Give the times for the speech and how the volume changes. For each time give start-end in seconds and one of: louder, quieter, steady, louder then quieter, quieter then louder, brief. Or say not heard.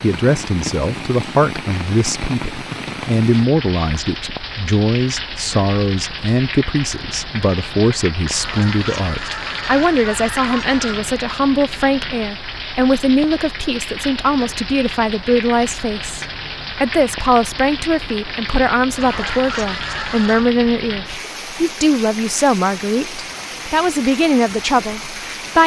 0.0-25.6 steady.